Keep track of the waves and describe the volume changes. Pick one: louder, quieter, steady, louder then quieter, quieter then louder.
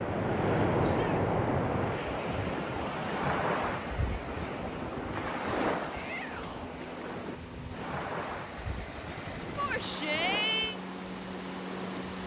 quieter.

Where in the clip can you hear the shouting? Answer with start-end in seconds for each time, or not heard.
0.8-1.2, 5.9-6.7, 9.6-10.8.